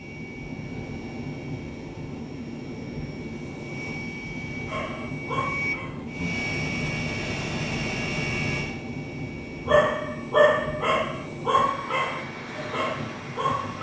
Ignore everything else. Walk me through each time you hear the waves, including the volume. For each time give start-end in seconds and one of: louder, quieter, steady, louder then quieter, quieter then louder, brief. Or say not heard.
0.0-13.7 steady.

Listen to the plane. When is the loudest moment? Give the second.
8 s.